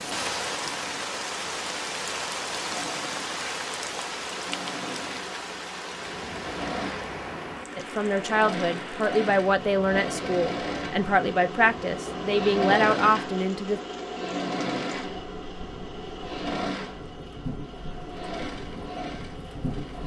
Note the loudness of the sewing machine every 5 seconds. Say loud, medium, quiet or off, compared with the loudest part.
medium, medium, loud, medium.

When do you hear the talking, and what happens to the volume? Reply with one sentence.
You can hear the talking from 7.8 to 13.8 s, at a steady volume.